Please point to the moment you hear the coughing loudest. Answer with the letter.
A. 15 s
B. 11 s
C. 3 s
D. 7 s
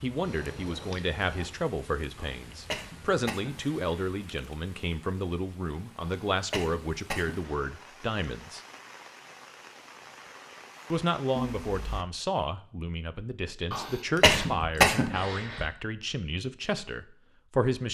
A.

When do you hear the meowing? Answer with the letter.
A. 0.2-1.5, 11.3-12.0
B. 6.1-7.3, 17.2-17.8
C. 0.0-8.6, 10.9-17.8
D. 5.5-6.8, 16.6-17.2
A.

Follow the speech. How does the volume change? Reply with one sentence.
The loudness of the speech stays about the same.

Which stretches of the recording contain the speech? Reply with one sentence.
You can hear the speech from 0.0 to 8.6 s and from 10.9 to 17.8 s.